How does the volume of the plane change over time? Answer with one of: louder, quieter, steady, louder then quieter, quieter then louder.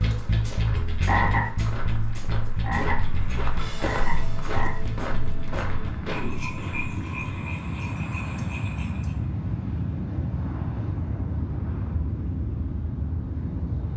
louder.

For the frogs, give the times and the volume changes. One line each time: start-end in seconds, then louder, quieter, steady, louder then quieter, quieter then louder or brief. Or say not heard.
0.0-9.2 quieter.